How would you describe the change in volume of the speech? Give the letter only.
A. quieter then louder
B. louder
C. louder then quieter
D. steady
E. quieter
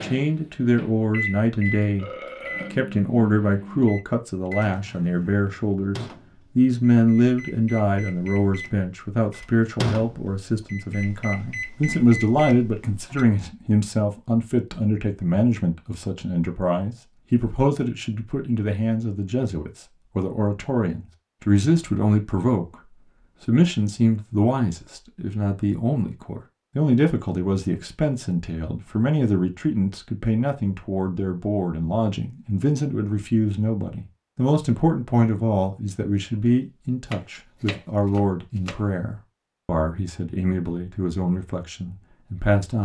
D.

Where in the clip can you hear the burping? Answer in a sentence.
You can hear the burping from 1.9 to 2.8 s.